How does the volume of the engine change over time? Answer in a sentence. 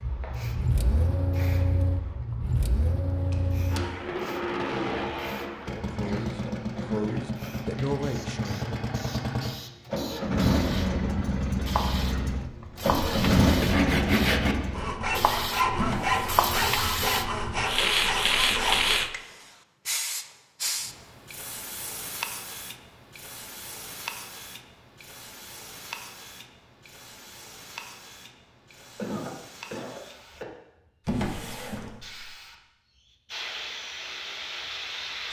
The loudness of the engine goes up.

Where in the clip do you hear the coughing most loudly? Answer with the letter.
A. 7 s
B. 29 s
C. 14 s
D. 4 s
B.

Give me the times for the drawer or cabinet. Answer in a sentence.
You can hear the drawer or cabinet from 3.1 to 3.8 s, from 15.8 to 16.4 s and from 31.1 to 32.4 s.